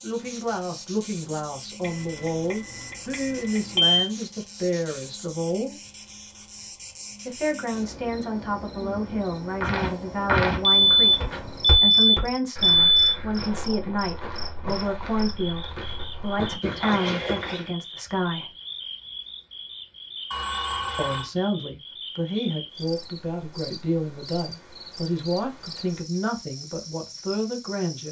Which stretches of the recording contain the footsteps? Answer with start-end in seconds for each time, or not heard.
9.6-17.7.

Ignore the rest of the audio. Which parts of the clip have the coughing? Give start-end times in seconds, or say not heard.
not heard.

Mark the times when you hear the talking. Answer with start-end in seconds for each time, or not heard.
0.0-5.8, 7.2-18.6, 20.9-28.0.